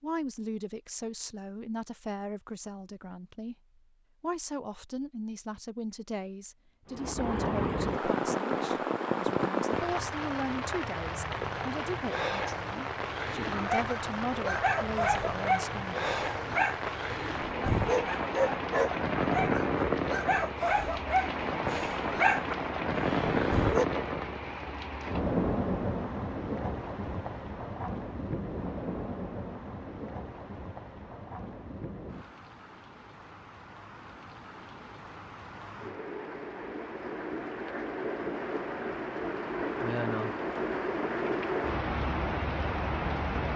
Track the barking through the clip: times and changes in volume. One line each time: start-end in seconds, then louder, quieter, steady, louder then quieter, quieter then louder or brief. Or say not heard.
13.6-23.9 steady.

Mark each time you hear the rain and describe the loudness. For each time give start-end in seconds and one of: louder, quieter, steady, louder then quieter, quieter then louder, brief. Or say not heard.
6.9-43.5 quieter then louder.